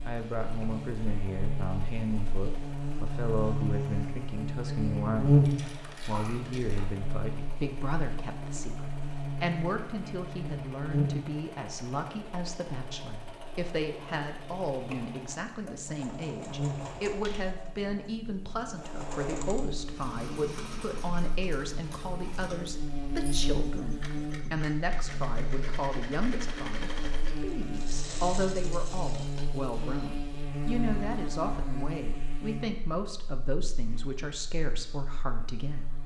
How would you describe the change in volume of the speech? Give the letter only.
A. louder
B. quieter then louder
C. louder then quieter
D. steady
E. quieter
D.